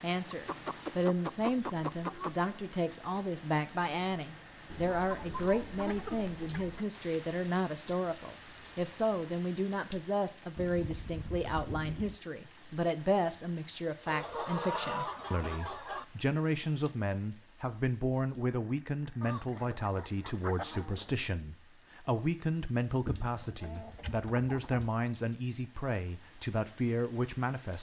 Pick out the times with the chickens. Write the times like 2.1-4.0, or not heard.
0.3-2.3, 4.7-6.8, 10.6-12.2, 14.1-16.1, 19.2-21.1, 23.1-24.9.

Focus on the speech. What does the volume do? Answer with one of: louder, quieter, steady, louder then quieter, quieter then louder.
steady.